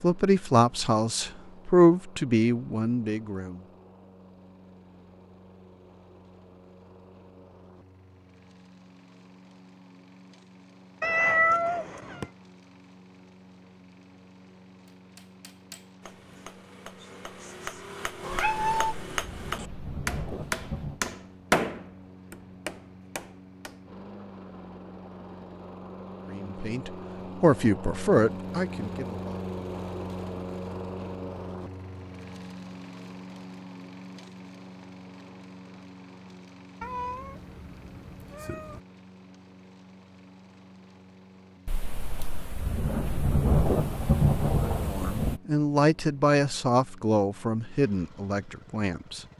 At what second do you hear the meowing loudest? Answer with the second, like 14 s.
11 s.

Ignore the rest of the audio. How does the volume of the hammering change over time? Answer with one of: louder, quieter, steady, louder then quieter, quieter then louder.
louder then quieter.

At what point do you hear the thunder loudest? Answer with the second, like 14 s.
44 s.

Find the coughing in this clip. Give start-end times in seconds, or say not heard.
not heard.